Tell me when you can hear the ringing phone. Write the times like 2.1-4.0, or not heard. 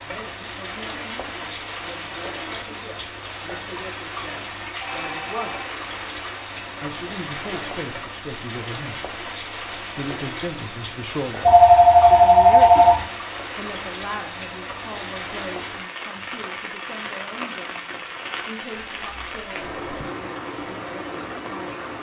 4.8-5.7, 11.4-13.1, 18.7-20.1.